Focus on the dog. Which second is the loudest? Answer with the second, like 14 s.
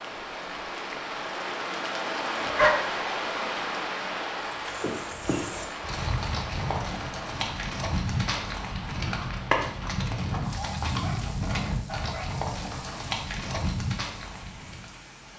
3 s.